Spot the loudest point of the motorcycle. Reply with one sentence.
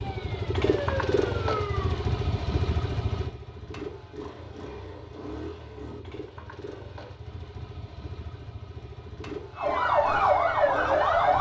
The volume of the motorcycle peaks at 1 second.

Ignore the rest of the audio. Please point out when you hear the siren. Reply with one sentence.
You can hear the siren from 0.0 to 2.1 s and from 9.6 to 11.3 s.